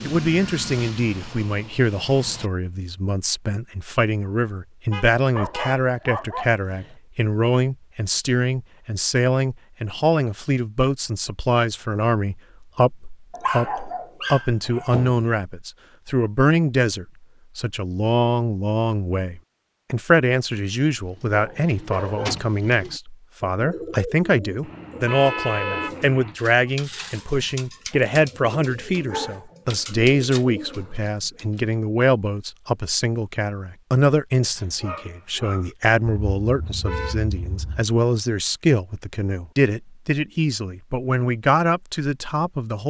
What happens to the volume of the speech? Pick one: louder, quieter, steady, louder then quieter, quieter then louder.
steady.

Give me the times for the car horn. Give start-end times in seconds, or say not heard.
4.9-5.8, 24.6-26.4, 36.0-37.9.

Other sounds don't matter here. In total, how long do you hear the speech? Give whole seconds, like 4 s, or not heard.
43 s.